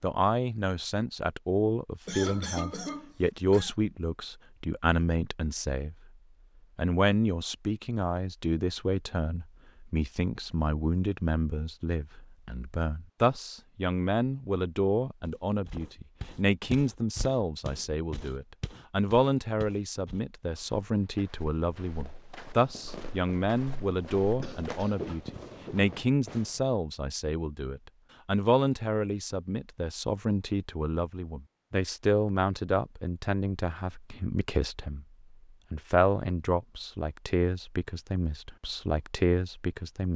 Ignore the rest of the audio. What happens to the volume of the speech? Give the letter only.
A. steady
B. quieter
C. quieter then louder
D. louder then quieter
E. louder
A.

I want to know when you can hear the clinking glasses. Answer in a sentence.
You can't hear the clinking glasses here.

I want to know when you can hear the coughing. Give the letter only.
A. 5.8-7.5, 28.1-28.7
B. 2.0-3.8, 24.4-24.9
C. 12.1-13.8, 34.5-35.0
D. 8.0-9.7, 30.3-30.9
B.